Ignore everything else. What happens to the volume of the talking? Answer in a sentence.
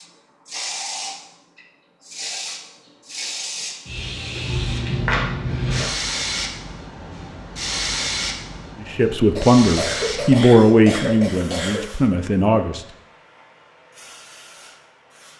The volume of the talking goes down.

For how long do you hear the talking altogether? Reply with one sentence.
You can hear the talking for 4 seconds altogether.